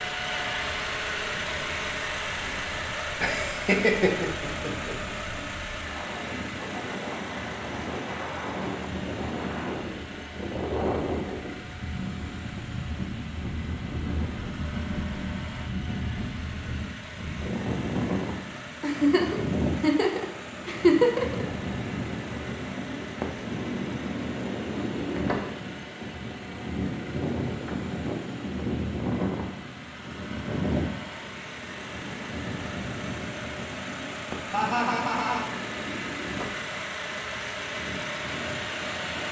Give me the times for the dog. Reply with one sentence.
The dog can't be heard in this clip.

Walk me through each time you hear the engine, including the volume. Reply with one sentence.
The engine can be heard from 0.0 to 39.2 s, getting quieter then louder.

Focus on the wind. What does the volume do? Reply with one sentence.
The loudness of the wind goes up, then down.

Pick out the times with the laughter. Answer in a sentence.
You can hear the laughter from 3.2 to 5.0 s, from 18.8 to 21.4 s and from 34.5 to 35.5 s.